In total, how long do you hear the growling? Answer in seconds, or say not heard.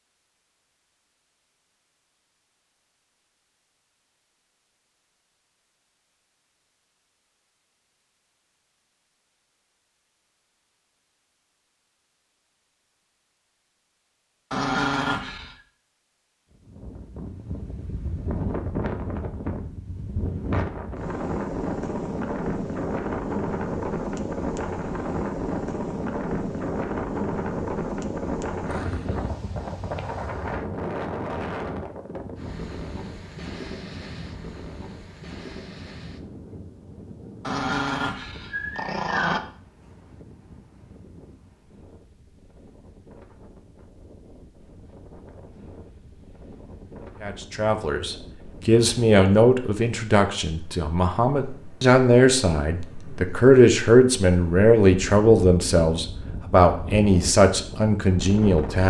3 s.